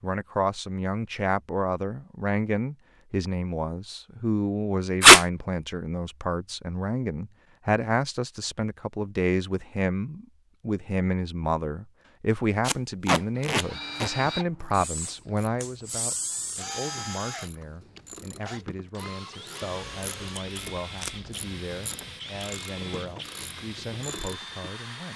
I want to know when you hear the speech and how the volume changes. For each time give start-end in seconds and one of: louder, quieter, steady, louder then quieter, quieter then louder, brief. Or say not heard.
0.0-25.1 quieter.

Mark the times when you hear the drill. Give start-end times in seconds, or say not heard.
13.4-25.1.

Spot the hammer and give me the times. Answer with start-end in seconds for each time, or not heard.
not heard.